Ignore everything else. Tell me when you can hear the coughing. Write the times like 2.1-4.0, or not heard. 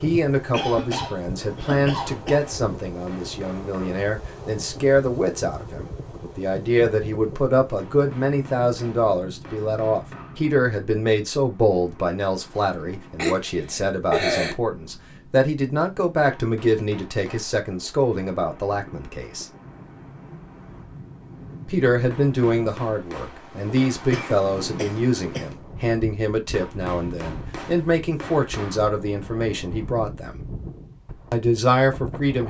0.5-2.4, 12.6-14.6, 24.1-25.4.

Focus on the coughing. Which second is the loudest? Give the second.
14 s.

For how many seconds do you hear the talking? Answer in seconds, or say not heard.
29 s.